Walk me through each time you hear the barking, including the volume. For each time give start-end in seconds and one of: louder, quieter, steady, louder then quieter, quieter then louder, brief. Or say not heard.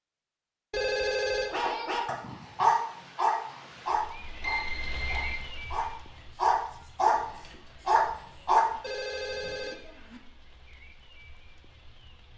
1.5-7.2 quieter then louder
7.8-8.7 brief.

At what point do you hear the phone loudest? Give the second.
1 s.